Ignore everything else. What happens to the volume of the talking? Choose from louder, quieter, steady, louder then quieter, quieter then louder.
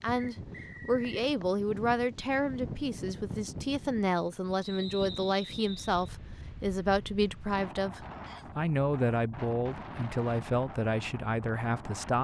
steady.